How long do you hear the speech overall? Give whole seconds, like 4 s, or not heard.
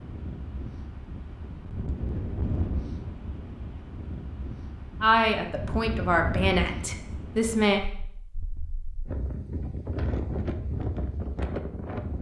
3 s.